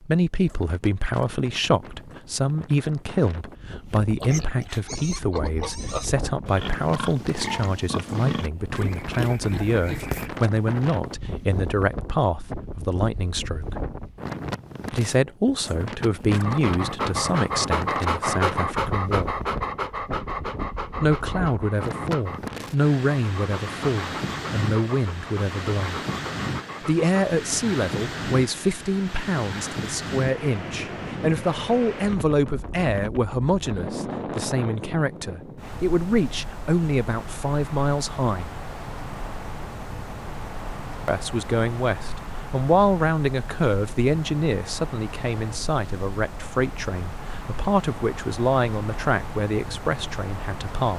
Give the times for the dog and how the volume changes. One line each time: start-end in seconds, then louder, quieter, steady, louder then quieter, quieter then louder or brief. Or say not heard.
16.2-27.1 quieter.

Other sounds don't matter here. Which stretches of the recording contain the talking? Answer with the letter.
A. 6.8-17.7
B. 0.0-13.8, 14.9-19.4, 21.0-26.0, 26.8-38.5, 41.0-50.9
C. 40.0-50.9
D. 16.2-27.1
B.